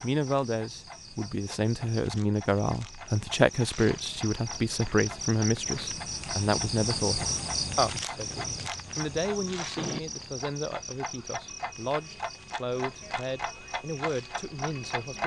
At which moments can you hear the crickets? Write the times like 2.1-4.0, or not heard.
0.0-15.2.